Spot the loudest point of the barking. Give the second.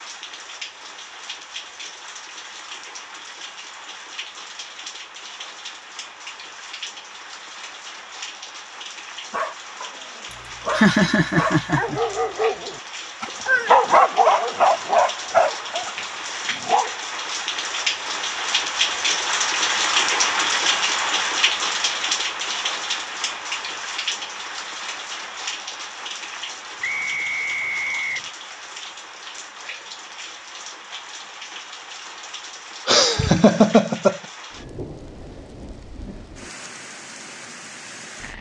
14 s.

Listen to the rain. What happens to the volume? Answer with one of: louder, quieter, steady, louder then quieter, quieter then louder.
louder then quieter.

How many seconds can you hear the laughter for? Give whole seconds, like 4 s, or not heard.
3 s.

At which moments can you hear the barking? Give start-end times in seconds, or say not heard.
9.3-16.9.